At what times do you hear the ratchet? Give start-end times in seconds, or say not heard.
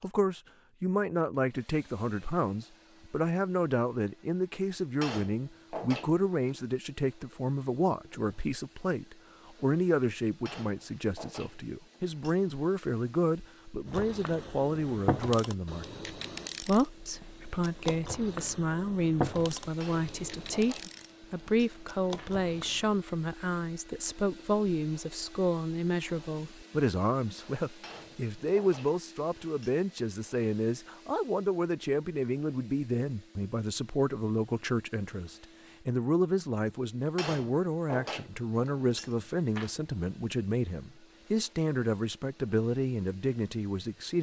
13.8-23.0.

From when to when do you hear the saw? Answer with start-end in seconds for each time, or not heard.
not heard.